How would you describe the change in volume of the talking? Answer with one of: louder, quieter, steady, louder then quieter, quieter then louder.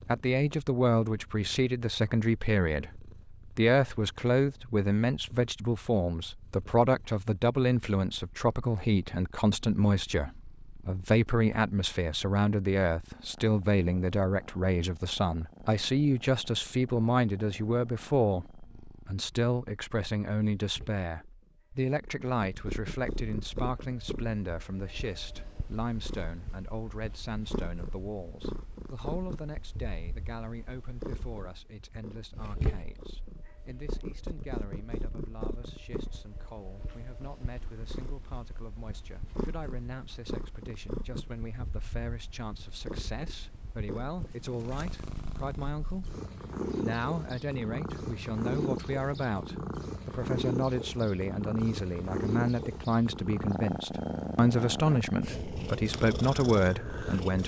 quieter then louder.